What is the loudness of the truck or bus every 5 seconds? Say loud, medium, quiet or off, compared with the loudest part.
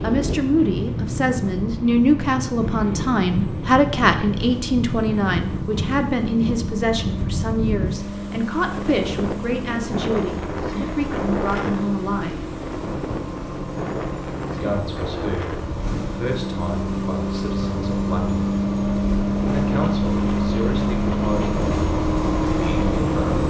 quiet, medium, medium, loud, loud.